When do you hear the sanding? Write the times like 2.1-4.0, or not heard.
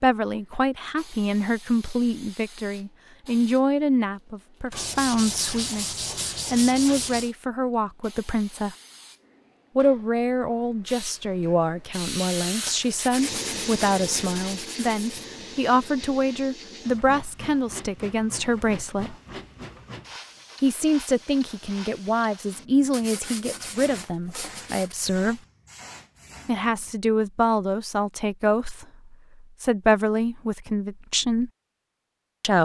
4.7-7.3, 12.7-15.2, 22.9-24.9.